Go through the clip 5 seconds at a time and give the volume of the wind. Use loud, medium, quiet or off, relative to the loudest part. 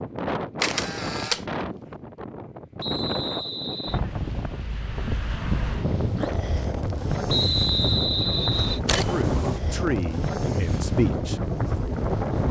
medium, loud, loud.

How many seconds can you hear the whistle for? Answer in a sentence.
You can hear the whistle for 3 seconds altogether.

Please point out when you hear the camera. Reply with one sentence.
The camera can be heard from 0.6 to 1.4 s and from 8.8 to 9.6 s.